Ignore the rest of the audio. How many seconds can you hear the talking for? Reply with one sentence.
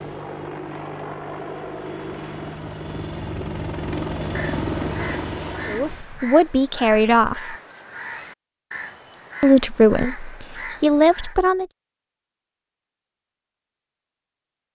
The talking can be heard for 4 seconds in total.